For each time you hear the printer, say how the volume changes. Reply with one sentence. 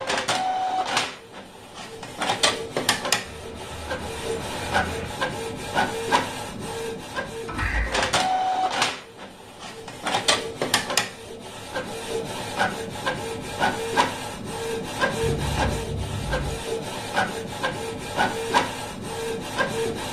You can hear the printer from 0.0 to 20.0 s, at a steady volume.